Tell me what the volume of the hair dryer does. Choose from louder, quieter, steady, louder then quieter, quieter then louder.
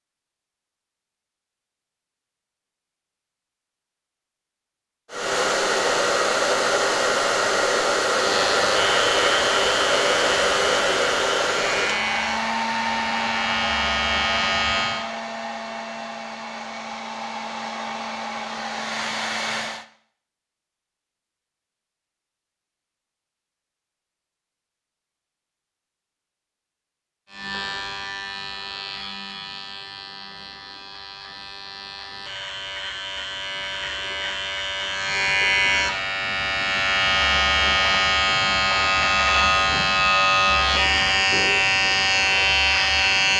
quieter.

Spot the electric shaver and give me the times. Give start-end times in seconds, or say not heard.
8.2-15.1, 27.2-43.3.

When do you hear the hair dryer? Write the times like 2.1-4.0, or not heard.
5.1-19.9.